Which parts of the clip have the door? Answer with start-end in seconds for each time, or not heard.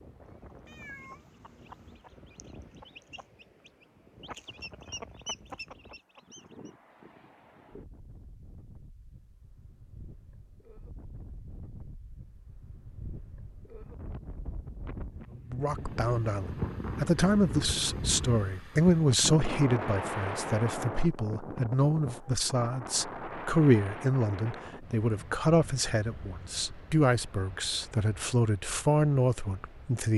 not heard.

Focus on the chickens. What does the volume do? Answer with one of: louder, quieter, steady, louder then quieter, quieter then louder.
louder.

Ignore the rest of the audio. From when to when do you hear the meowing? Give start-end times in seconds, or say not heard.
0.7-2.0.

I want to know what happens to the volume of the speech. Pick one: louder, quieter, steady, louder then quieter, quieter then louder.
steady.